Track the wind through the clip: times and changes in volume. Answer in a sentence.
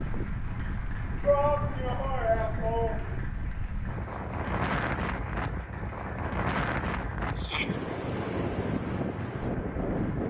The wind can be heard from 0.0 to 10.2 s, getting louder.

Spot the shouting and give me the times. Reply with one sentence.
The shouting can be heard from 1.2 to 3.2 s and from 7.3 to 7.8 s.